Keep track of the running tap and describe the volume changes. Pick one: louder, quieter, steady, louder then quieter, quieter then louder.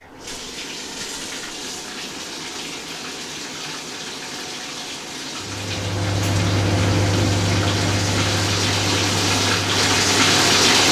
louder.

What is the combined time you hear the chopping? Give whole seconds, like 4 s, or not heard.
not heard.